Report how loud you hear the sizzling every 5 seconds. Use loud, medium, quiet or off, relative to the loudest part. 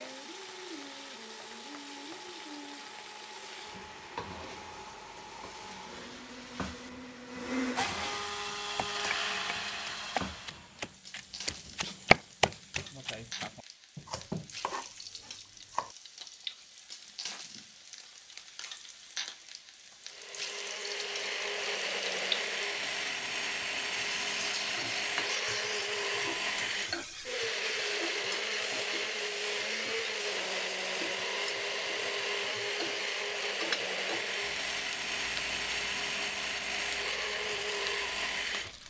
medium, medium, medium, medium, loud, loud, loud, medium.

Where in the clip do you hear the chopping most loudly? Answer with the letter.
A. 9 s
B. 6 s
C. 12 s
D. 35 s
C.